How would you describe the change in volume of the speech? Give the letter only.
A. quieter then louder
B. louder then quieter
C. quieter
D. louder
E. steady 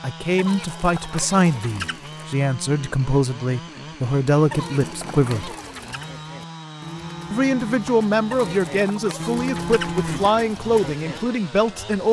E.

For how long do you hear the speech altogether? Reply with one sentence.
You can hear the speech for 10 seconds altogether.